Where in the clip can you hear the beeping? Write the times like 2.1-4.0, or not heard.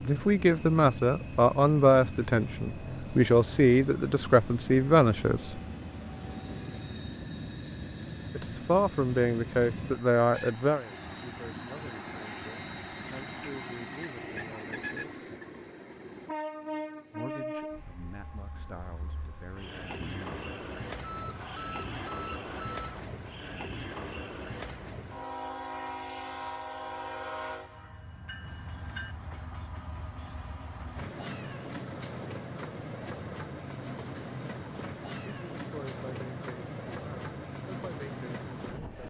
21.0-23.0.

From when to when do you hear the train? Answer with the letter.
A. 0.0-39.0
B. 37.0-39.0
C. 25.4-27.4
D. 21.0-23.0
A.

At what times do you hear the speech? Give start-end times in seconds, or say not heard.
0.0-5.6, 8.3-15.2, 17.1-20.4, 35.2-39.0.